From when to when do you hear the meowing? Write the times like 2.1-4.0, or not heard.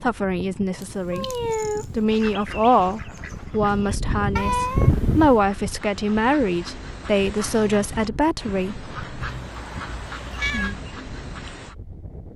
0.8-1.9, 4.3-5.5, 9.2-10.8.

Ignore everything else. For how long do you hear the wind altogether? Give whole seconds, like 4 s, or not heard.
12 s.